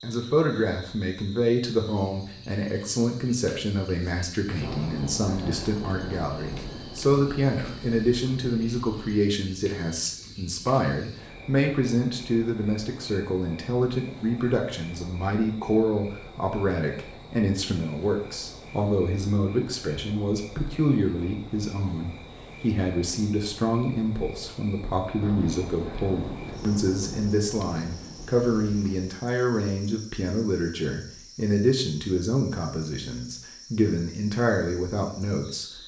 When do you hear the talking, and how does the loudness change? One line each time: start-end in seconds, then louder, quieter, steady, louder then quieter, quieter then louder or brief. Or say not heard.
0.0-35.7 steady.